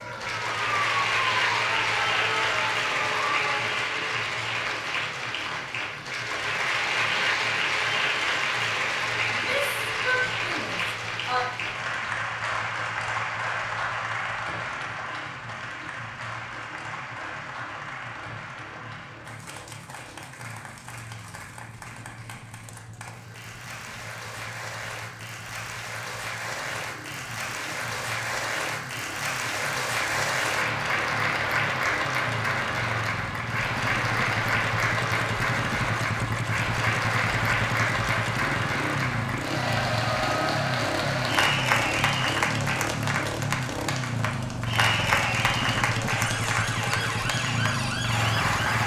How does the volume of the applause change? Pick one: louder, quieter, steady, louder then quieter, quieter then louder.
quieter then louder.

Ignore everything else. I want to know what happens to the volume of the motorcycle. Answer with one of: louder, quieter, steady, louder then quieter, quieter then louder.
louder.